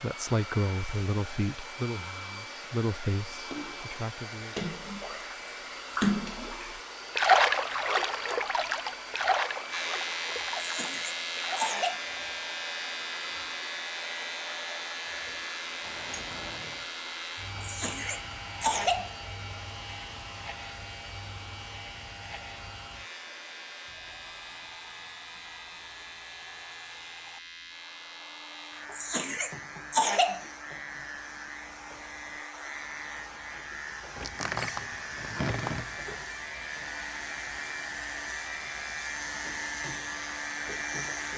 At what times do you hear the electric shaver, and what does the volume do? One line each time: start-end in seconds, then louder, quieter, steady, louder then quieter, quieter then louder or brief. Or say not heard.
9.7-41.3 quieter then louder.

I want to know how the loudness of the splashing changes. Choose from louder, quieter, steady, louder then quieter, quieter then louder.
louder then quieter.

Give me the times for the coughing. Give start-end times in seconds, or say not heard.
10.6-12.0, 17.6-19.1, 28.9-30.4.